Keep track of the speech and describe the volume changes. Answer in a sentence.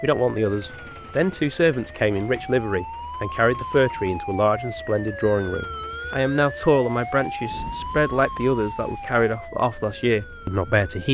The volume of the speech stays about the same.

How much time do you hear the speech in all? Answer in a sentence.
The speech can be heard for 11 seconds in total.